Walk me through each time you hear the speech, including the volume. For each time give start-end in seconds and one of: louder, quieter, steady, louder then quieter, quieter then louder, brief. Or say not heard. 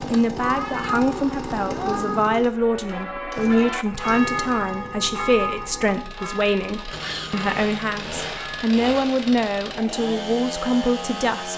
0.0-11.5 steady.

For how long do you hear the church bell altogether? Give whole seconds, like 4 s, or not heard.
6 s.